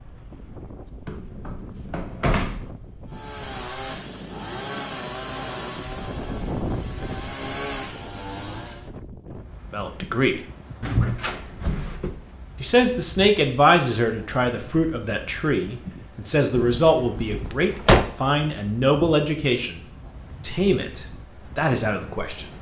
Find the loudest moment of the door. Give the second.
18 s.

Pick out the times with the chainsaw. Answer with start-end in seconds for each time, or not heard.
3.1-8.9.